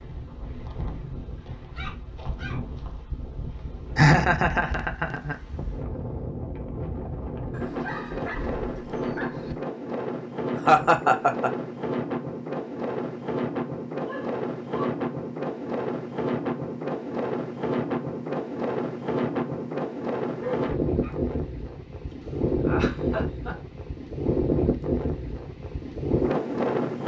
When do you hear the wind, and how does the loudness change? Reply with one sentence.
You can hear the wind from 0.0 to 27.0 s, getting louder.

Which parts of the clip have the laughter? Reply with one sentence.
You can hear the laughter from 4.0 to 5.3 s, from 10.7 to 11.5 s and from 22.1 to 23.6 s.